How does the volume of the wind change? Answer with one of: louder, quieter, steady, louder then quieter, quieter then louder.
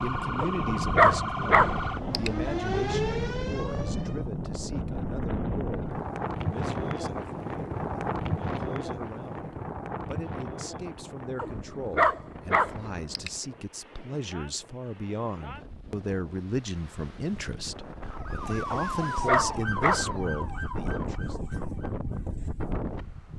quieter then louder.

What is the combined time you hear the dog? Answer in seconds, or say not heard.
5 s.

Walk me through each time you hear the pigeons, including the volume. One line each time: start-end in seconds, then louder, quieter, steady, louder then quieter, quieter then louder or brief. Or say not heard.
not heard.